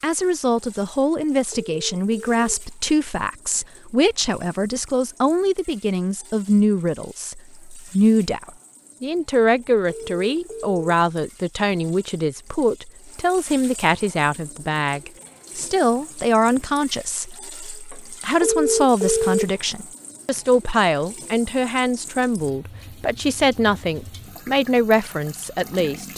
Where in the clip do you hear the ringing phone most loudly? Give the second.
19 s.